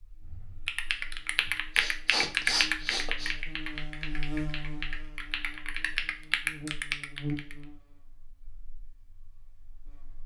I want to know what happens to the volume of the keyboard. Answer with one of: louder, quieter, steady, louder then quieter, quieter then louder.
quieter then louder.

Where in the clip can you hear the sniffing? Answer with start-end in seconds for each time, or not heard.
1.4-3.4.